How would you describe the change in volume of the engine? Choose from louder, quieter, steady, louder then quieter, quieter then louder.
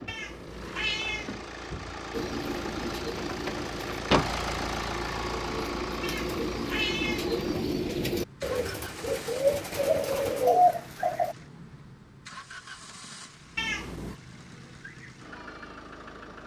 louder then quieter.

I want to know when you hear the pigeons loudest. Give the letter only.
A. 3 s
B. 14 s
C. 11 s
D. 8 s
C.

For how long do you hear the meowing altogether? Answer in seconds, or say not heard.
3 s.